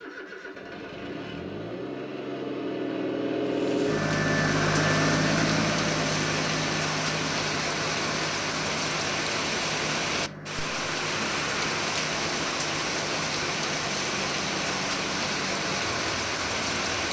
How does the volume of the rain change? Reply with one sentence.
The loudness of the rain stays about the same.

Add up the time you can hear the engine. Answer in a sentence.
You can hear the engine for 17 seconds altogether.